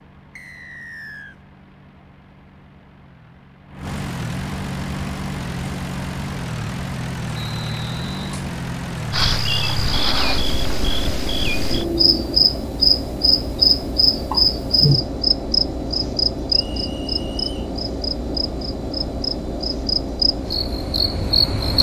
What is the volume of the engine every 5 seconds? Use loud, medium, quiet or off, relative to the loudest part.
medium, loud, loud, loud, loud.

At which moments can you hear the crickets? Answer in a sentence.
The crickets can be heard from 9.1 to 21.7 s.